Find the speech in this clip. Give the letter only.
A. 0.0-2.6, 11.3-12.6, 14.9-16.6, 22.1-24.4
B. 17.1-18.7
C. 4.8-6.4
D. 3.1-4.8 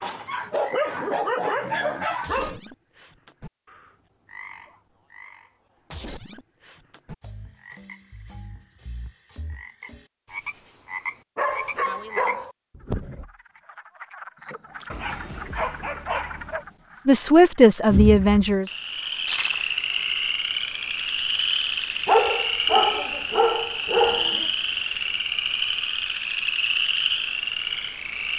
B.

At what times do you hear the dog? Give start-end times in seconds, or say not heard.
0.0-2.6, 11.3-12.6, 14.9-16.6, 22.1-24.4.